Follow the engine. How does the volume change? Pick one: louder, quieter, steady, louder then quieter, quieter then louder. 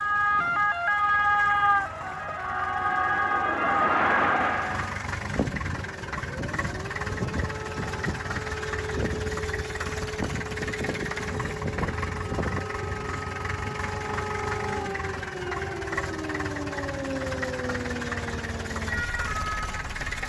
louder.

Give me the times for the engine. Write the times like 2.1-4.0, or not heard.
0.0-20.2.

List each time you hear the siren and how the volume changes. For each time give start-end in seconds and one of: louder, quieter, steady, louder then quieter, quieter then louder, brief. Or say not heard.
0.0-20.2 quieter.